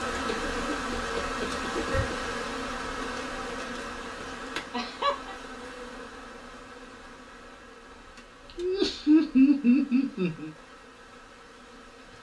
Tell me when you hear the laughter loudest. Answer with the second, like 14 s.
9 s.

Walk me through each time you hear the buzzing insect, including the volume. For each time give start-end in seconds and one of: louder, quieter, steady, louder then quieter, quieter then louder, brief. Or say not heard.
0.0-12.1 quieter.